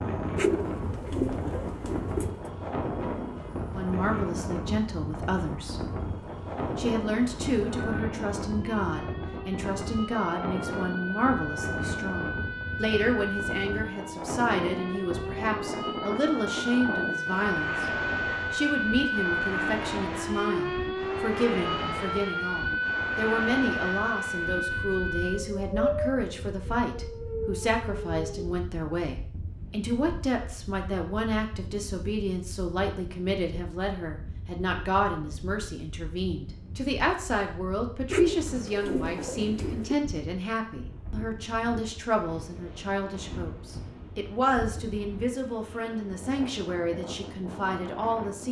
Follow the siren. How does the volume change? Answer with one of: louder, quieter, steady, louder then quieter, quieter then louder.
louder.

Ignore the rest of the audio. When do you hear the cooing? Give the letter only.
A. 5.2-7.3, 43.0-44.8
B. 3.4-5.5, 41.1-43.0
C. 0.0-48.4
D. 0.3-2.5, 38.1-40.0
D.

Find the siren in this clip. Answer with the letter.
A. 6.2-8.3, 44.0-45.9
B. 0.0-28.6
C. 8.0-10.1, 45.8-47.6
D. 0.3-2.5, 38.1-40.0
B.